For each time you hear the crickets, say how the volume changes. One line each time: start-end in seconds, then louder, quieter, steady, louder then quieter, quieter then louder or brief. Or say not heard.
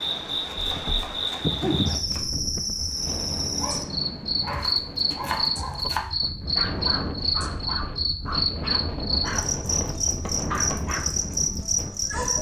0.0-12.3 steady.